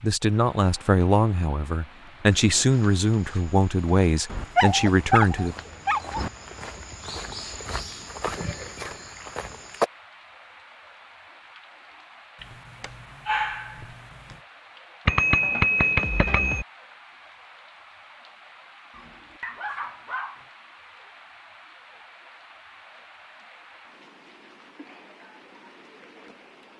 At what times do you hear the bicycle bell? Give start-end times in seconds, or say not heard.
8.3-9.2, 15.1-16.6.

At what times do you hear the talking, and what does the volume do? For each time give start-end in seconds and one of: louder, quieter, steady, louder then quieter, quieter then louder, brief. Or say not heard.
0.0-5.5 steady.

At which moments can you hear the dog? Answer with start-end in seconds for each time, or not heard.
4.2-6.3, 12.4-14.3, 18.9-20.4.